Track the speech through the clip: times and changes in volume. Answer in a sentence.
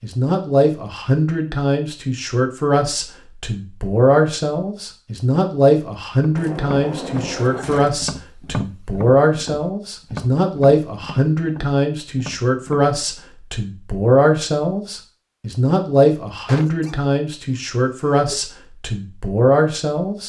The speech can be heard from 0.0 to 20.2 s, at a steady volume.